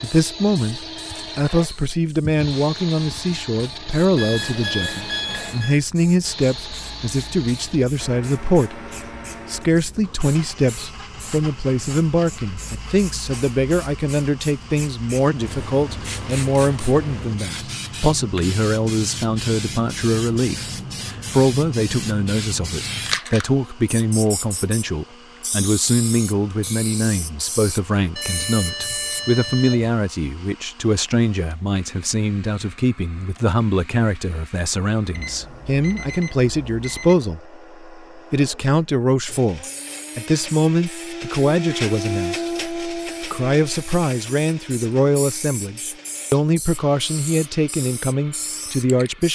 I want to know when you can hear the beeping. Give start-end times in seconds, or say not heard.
4.2-5.8, 28.1-29.9, 35.1-37.1.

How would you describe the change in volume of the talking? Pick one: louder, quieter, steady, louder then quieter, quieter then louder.
steady.